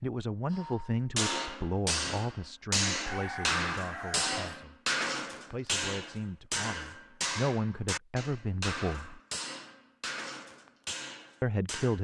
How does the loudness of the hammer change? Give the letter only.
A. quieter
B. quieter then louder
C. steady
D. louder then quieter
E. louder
A.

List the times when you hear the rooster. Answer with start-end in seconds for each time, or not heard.
3.0-4.7.